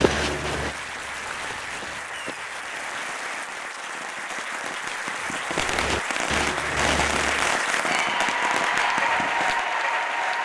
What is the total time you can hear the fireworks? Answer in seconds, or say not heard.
9 s.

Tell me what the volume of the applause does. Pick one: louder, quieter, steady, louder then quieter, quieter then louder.
louder.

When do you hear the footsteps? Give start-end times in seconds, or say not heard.
0.0-2.9, 5.5-7.4.